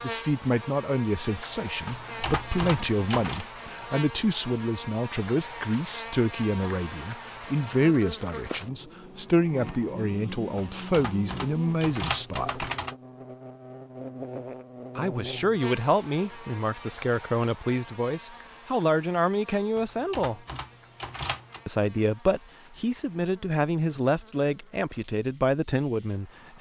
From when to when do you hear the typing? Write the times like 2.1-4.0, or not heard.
1.9-3.5, 10.6-12.9, 19.8-21.6.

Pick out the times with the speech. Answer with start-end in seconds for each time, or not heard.
0.0-12.7, 14.9-20.4, 21.6-26.5.